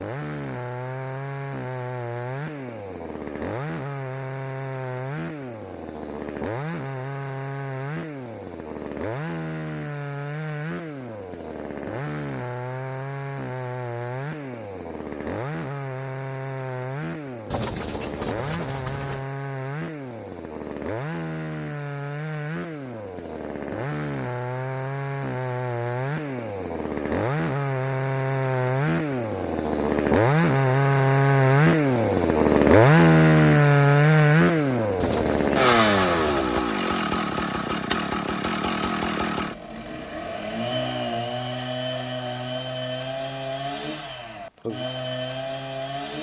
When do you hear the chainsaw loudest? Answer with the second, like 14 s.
33 s.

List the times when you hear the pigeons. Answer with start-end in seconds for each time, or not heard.
17.5-19.2, 35.0-36.6.